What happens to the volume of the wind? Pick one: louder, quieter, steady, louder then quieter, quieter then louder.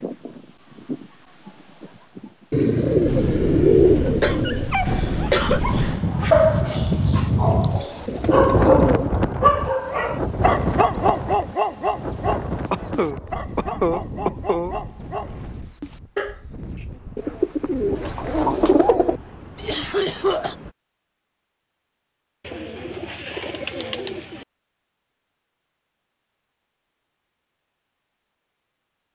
louder then quieter.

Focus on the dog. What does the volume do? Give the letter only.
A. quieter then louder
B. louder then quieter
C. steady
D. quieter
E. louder
D.